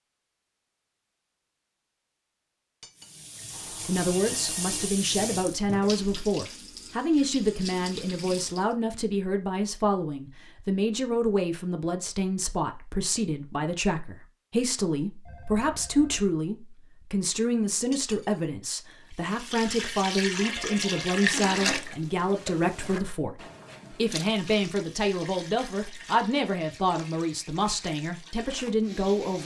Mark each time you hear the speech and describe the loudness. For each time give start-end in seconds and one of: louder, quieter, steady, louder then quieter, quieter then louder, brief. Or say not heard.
3.9-29.4 steady.